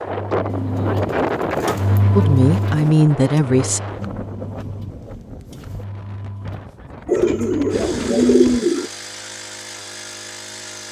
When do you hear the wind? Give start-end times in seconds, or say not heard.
0.0-8.6.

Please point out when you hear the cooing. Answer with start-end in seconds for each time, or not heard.
0.5-3.0, 7.0-8.9.